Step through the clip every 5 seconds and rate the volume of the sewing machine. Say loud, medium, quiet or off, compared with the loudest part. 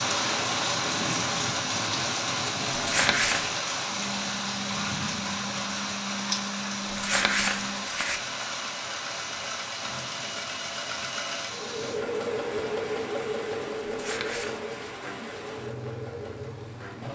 medium, medium, loud, medium.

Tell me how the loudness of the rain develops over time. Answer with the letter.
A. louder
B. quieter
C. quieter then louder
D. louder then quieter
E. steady
B.